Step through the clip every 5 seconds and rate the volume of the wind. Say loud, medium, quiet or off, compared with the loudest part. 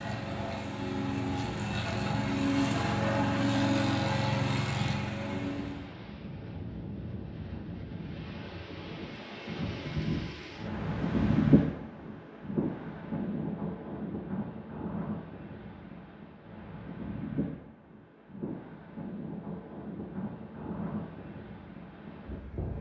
medium, medium, loud, medium, medium.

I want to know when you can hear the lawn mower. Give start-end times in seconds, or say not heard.
0.0-5.9.